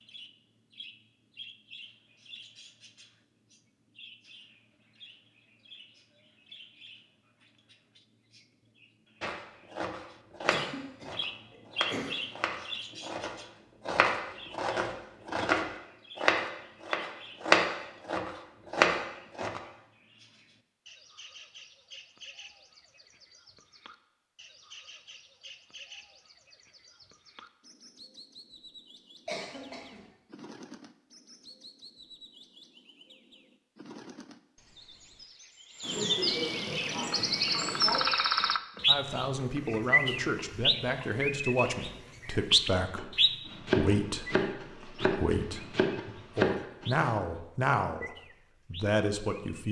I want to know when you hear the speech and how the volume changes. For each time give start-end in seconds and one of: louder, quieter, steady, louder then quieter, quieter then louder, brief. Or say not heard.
38.9-49.6 steady.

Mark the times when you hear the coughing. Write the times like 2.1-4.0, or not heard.
10.4-12.2, 29.2-30.0, 35.8-38.0.